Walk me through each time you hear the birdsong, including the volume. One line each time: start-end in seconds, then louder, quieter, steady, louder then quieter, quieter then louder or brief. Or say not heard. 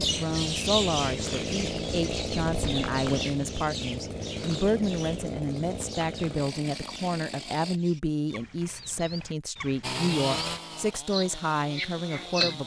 0.0-12.6 quieter then louder.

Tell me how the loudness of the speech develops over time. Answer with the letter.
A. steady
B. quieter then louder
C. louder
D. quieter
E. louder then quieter
A.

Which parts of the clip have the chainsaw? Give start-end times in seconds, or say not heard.
0.0-7.8, 9.8-12.6.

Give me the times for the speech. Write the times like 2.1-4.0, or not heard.
0.0-12.6.